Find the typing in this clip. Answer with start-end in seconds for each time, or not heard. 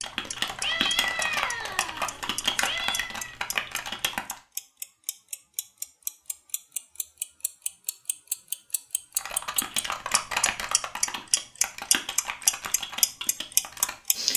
0.0-4.4, 9.1-14.3.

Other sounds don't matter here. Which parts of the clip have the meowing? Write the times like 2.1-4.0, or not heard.
0.6-3.4.